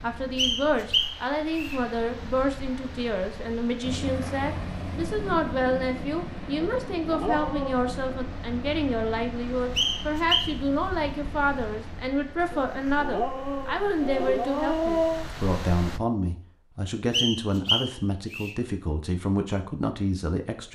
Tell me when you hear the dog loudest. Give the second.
15 s.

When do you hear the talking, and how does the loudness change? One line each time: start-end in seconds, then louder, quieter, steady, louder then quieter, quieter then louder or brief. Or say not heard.
0.0-20.6 steady.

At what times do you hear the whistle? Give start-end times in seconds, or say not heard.
0.3-1.8, 9.8-10.6, 17.1-18.6.